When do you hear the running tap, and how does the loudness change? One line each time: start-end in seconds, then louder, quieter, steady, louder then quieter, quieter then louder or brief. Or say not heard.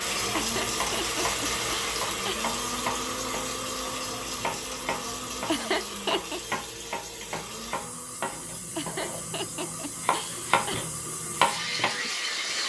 0.0-12.6 quieter then louder.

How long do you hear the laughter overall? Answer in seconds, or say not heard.
5 s.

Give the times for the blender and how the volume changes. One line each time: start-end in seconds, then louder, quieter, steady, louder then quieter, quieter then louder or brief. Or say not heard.
0.0-12.6 quieter.